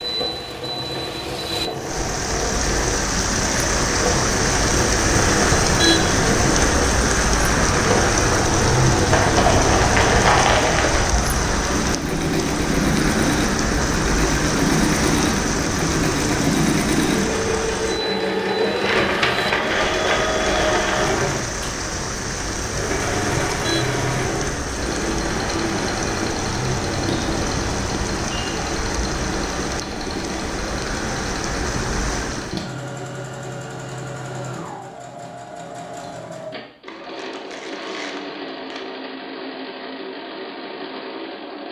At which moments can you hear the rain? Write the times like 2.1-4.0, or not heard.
0.0-32.7.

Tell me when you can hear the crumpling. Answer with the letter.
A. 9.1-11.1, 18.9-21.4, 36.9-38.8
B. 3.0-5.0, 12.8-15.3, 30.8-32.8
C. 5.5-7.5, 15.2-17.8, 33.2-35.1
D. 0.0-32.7
A.